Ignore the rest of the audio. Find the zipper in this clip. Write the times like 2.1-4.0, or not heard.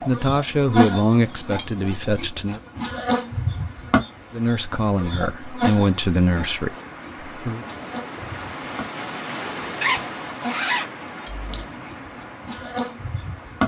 9.8-11.7.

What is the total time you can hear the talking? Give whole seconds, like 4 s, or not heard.
6 s.